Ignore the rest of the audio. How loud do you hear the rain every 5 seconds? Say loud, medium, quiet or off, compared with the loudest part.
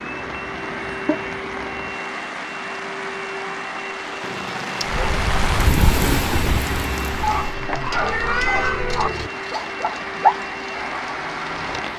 medium, loud, medium.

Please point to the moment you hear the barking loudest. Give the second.
10 s.